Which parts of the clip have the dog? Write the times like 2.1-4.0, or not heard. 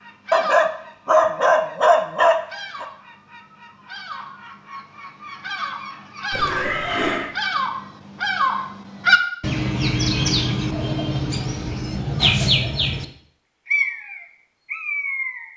0.3-2.9.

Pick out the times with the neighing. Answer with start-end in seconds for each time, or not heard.
6.3-7.3.